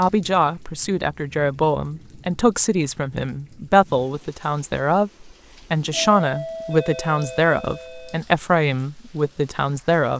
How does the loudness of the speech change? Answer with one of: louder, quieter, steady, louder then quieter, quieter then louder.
steady.